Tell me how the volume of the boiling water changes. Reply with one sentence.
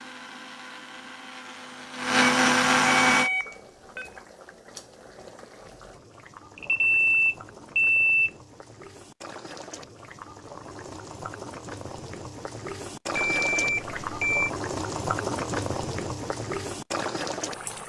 The volume of the boiling water goes up.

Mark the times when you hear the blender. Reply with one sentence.
You can hear the blender from 0.0 to 3.3 s.